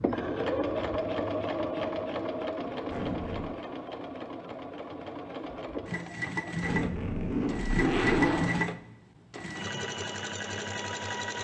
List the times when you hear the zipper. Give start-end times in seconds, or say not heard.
2.9-3.5, 6.6-8.6.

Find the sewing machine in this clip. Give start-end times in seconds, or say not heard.
0.0-11.4.